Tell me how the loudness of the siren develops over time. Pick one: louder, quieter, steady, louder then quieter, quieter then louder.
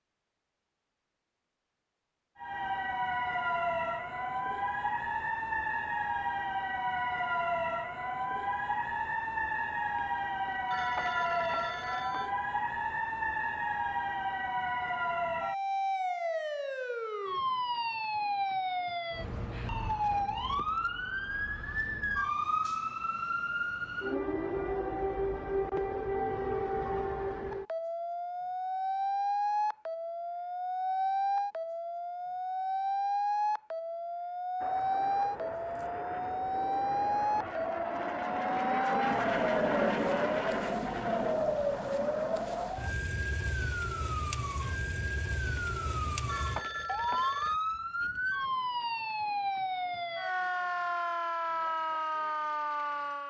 steady.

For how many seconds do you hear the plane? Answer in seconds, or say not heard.
8 s.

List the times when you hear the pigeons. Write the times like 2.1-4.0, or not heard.
not heard.